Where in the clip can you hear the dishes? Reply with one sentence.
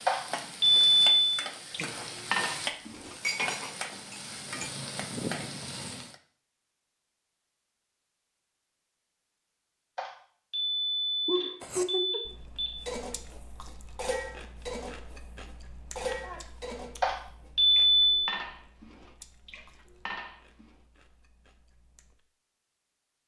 The dishes can be heard from 1.7 to 4.7 s and from 12.8 to 20.8 s.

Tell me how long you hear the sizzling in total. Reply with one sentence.
The sizzling can be heard for 6 seconds in total.